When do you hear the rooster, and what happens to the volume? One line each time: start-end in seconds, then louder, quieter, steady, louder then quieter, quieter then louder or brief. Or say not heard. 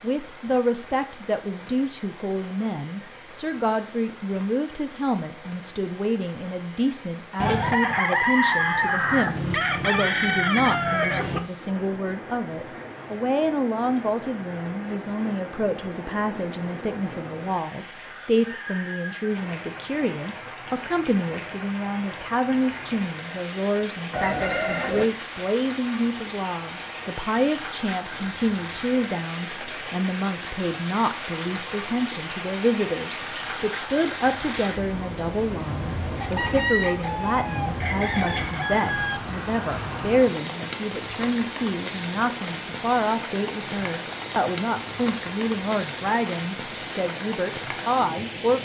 7.4-11.4 steady
24.1-25.1 brief
36.2-39.1 brief.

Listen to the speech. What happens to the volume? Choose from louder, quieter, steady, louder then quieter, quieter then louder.
steady.